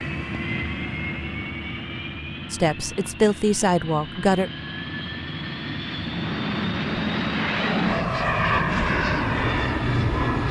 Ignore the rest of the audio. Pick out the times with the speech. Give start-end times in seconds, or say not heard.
2.5-4.5.